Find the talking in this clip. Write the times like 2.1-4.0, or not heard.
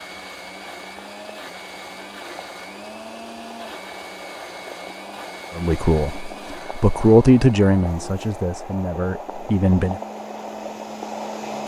5.5-10.0.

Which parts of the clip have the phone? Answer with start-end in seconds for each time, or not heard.
not heard.